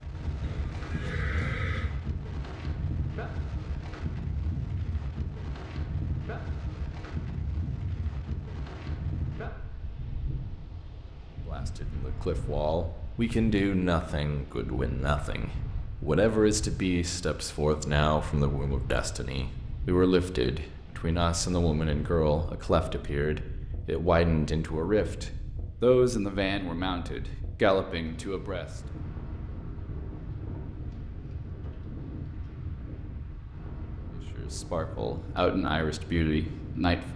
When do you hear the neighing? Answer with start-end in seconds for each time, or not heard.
0.4-1.9.